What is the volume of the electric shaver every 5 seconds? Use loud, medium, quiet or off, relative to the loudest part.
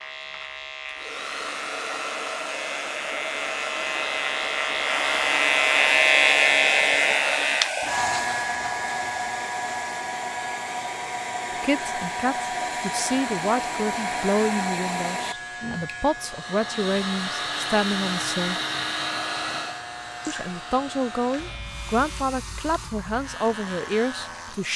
medium, loud, quiet, quiet, quiet.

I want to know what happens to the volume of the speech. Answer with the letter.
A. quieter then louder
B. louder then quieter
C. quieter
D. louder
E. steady
E.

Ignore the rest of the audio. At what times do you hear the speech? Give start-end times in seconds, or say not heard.
11.5-18.6, 20.2-24.7.